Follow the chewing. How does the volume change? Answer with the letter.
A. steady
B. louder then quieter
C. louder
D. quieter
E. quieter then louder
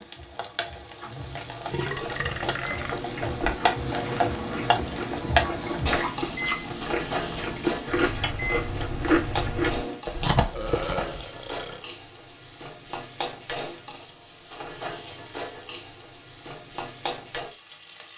C.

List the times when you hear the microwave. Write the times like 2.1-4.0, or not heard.
2.6-10.0.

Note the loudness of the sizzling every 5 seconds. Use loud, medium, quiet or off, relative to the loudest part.
loud, loud, medium, medium.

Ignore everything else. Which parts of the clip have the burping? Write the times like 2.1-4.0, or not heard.
1.7-3.0, 10.6-11.8.